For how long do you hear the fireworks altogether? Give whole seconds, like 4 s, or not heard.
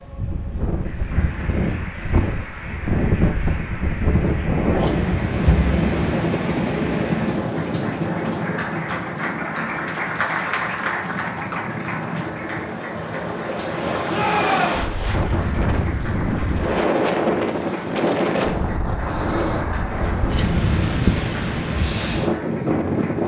not heard.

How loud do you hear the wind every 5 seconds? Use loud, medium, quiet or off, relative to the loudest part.
loud, loud, medium, loud, loud.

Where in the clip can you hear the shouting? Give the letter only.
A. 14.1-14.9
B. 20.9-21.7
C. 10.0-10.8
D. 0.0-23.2
A.